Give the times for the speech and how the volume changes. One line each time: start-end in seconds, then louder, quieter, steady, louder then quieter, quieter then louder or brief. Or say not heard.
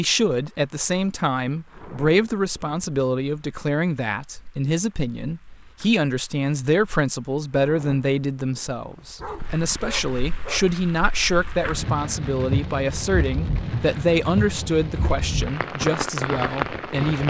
0.0-17.2 steady.